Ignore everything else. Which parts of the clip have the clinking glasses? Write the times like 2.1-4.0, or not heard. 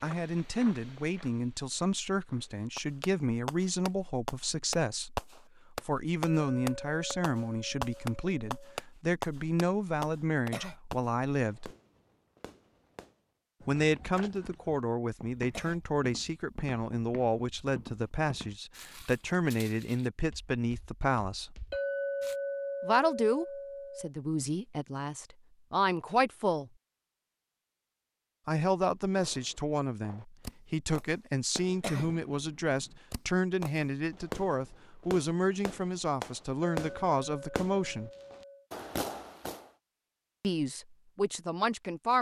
6.2-8.8, 21.7-24.1, 36.6-38.6.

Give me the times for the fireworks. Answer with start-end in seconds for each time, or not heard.
2.8-13.2, 29.1-39.6.